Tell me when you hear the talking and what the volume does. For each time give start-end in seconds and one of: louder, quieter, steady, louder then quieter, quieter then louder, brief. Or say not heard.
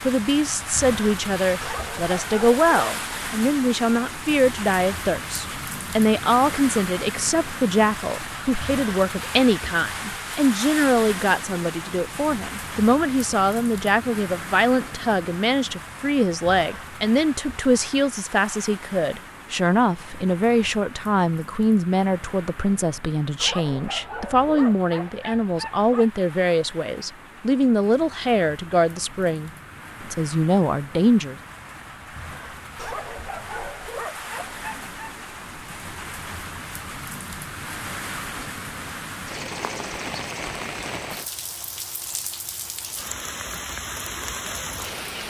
0.0-31.4 steady.